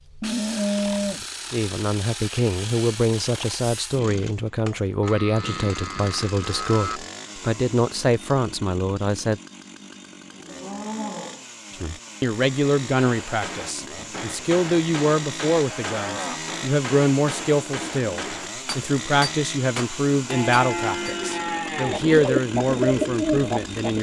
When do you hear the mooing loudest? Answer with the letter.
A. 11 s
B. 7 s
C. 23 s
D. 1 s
D.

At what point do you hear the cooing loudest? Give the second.
23 s.